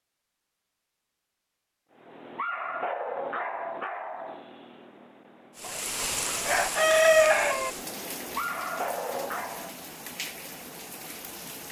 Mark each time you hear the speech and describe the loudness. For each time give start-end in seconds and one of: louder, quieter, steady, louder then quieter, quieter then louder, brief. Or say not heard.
not heard.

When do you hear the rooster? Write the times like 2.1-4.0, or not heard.
6.0-7.7.